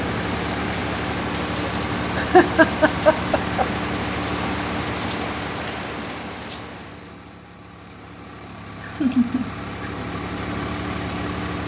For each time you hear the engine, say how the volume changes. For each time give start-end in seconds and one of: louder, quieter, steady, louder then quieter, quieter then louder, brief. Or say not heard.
0.0-11.6 quieter then louder.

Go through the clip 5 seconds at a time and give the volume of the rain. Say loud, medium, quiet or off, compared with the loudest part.
loud, loud, off.